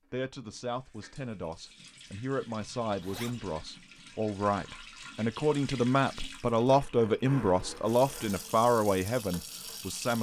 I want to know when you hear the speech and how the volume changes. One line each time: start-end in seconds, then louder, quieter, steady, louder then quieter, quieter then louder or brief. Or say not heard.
0.1-10.1 louder.